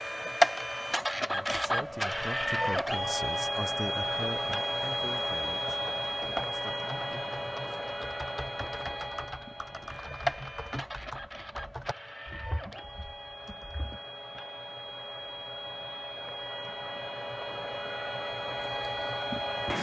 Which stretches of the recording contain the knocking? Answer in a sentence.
You can't hear the knocking here.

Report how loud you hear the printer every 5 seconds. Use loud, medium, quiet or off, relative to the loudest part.
loud, medium, medium, medium.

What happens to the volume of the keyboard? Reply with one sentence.
The loudness of the keyboard goes down.